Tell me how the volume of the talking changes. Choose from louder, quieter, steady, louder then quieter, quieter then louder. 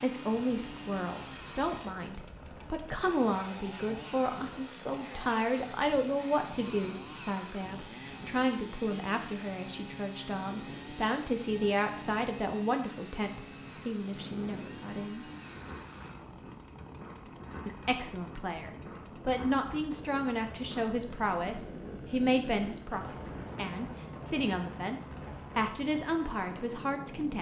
steady.